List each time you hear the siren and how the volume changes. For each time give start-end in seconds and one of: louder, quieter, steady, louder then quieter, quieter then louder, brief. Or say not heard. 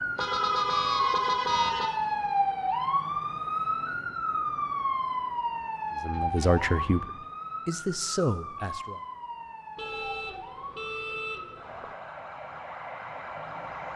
0.0-13.9 quieter.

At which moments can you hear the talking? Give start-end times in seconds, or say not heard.
6.0-9.0.